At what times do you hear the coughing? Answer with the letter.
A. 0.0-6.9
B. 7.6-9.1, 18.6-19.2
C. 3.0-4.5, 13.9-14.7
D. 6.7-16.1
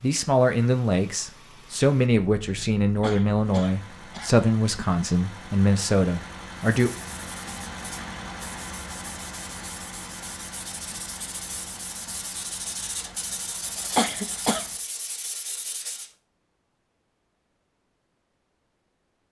C.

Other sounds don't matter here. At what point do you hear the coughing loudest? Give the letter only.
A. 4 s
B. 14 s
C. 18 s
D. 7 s
B.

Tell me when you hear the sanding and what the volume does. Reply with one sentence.
The sanding can be heard from 6.7 to 16.1 s, getting louder.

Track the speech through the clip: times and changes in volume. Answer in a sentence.
You can hear the speech from 0.0 to 6.9 s, at a steady volume.